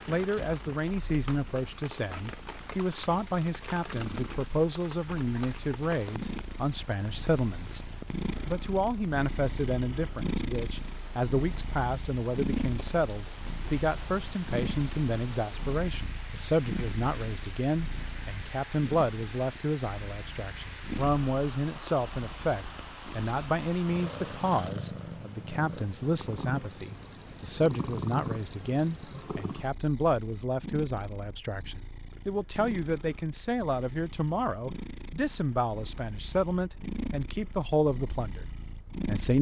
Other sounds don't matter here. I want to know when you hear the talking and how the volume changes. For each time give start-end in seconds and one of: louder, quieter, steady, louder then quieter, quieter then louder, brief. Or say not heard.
0.1-39.3 steady.